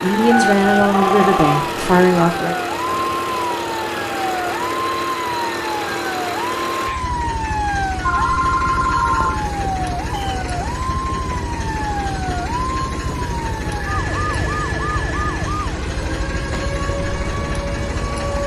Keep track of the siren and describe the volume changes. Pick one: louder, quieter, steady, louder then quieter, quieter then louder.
steady.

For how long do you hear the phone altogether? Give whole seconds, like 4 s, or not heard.
4 s.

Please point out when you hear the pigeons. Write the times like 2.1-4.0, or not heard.
not heard.